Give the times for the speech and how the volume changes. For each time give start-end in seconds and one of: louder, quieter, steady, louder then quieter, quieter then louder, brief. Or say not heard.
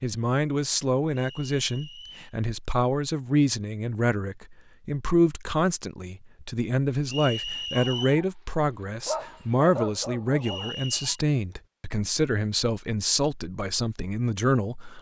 0.0-14.9 steady.